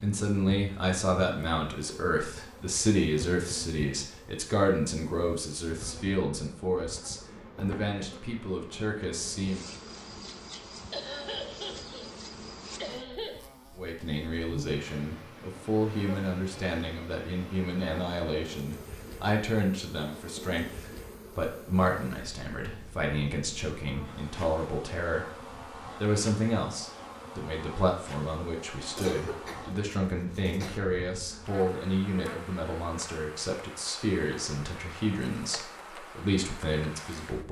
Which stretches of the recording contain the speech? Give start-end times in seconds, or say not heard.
0.0-9.7, 13.8-37.4.